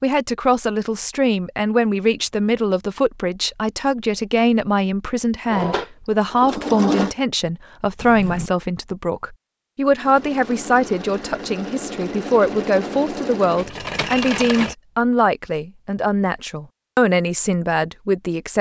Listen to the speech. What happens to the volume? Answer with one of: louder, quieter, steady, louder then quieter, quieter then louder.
steady.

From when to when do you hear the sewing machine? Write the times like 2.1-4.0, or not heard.
5.5-7.2, 9.9-14.8.